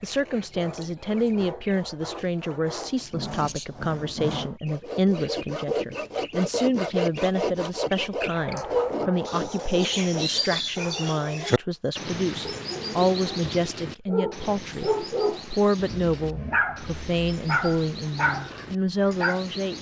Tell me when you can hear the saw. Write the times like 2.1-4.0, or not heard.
0.1-10.6.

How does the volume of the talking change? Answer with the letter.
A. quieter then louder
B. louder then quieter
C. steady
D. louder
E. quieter
C.